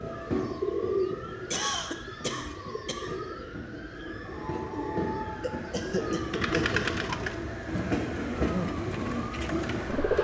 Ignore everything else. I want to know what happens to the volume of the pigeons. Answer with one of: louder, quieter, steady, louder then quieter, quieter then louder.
quieter then louder.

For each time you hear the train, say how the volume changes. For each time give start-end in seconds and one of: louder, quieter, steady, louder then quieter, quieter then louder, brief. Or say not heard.
0.0-10.1 louder.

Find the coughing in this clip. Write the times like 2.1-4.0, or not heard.
1.5-3.1, 5.4-7.0.